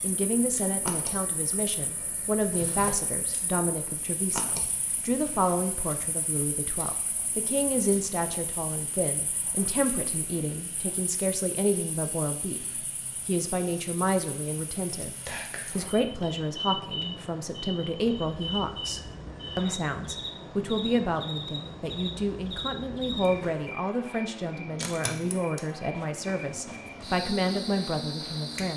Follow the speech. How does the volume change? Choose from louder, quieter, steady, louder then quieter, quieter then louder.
steady.